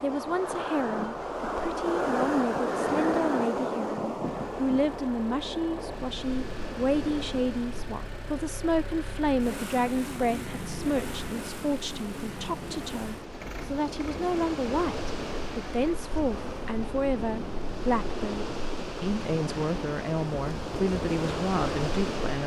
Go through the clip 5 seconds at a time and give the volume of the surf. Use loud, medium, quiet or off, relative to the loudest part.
loud, medium, medium, medium, loud.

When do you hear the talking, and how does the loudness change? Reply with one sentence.
You can hear the talking from 0.0 to 22.4 s, at a steady volume.